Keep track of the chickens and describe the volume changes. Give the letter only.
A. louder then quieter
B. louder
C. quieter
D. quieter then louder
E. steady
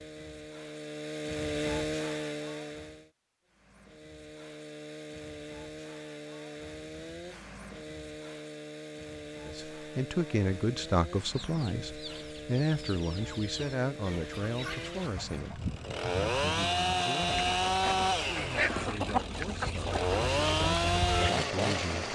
B.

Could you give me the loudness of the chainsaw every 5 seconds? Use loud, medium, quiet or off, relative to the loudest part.
medium, quiet, quiet, loud, loud.